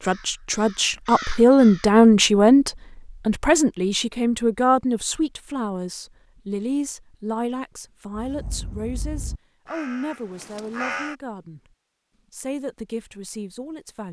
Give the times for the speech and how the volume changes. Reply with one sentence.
You can hear the speech from 0.0 to 11.6 s, getting quieter; and briefly from 12.3 to 14.0 s.